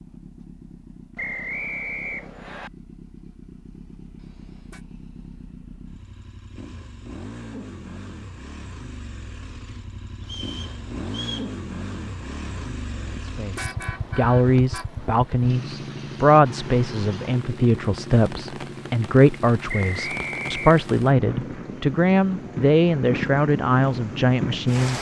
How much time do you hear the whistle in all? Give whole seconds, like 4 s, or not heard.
4 s.